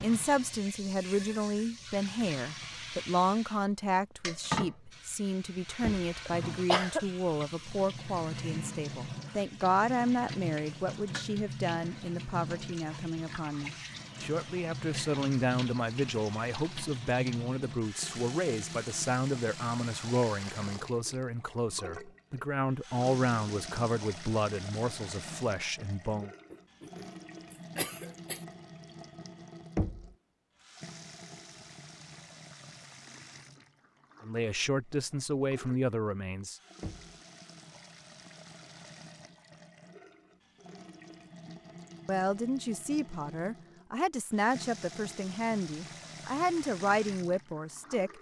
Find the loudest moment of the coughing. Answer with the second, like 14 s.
7 s.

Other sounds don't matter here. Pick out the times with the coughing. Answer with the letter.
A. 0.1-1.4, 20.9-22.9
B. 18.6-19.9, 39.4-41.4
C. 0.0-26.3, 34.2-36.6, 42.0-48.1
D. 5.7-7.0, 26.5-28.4
D.